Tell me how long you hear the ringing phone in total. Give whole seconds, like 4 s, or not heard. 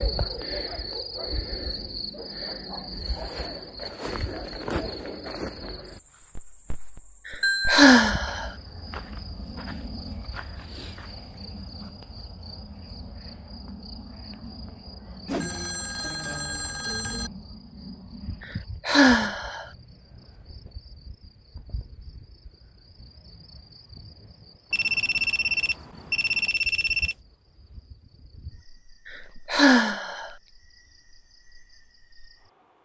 5 s.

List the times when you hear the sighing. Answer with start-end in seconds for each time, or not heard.
7.2-8.5, 18.9-19.6, 29.4-30.3.